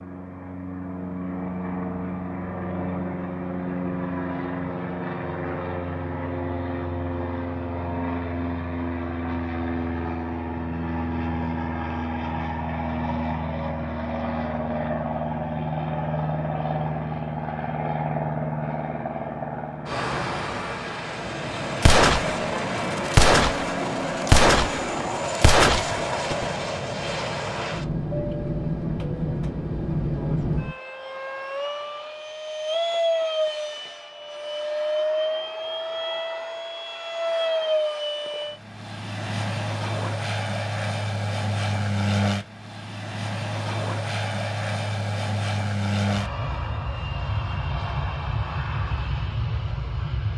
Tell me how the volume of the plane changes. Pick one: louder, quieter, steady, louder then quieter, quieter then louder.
steady.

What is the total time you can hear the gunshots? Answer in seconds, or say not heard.
5 s.